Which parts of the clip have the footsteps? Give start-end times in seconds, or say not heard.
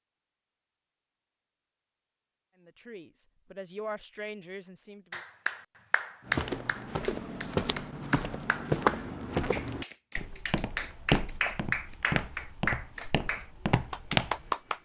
6.2-14.5.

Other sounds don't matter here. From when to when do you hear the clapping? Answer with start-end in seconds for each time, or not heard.
5.1-14.8.